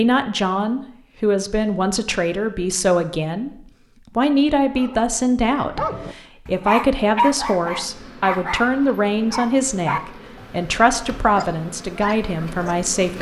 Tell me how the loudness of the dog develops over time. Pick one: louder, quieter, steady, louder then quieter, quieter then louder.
louder then quieter.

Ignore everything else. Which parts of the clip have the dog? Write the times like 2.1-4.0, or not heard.
4.7-12.8.